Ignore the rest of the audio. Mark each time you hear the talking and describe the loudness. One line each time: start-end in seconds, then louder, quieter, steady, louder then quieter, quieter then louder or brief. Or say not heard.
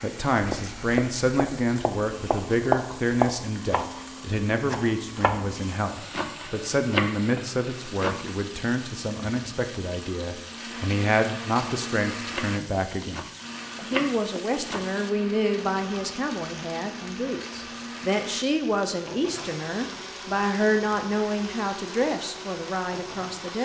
0.0-23.5 steady.